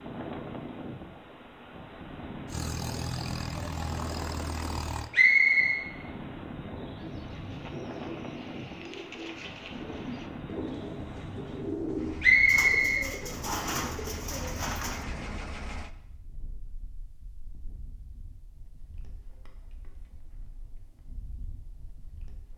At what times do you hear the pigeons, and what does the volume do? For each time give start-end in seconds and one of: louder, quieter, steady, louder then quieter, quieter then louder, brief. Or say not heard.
7.0-15.1 louder.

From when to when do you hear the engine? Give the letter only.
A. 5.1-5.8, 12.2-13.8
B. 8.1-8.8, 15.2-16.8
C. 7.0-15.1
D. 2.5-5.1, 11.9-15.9
D.